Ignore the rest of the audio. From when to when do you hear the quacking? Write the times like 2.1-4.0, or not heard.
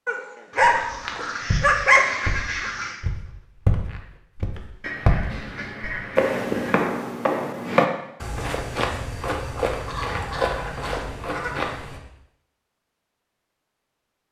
0.5-3.0, 4.8-6.8, 9.8-11.7.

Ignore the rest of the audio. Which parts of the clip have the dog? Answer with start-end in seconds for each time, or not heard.
0.1-2.2.